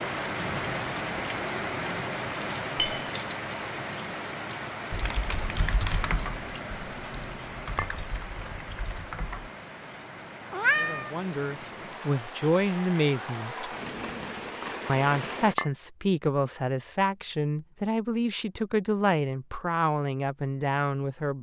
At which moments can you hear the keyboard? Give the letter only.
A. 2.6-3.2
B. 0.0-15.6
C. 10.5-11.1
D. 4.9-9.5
D.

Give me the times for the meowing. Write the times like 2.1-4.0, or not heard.
10.5-11.1.